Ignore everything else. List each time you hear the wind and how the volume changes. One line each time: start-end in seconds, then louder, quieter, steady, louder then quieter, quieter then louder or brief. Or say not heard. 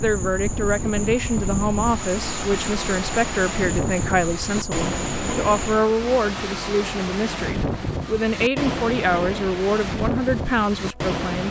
0.0-11.4 steady.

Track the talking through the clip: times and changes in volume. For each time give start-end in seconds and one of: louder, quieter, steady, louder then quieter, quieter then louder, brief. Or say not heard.
0.0-11.4 steady.